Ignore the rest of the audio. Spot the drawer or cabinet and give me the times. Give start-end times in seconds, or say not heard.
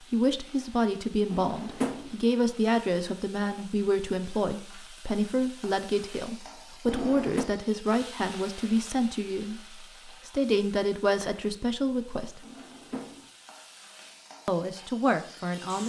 1.3-2.1, 6.8-7.5, 12.4-13.3.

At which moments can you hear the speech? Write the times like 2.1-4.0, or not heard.
0.1-12.4, 14.4-15.8.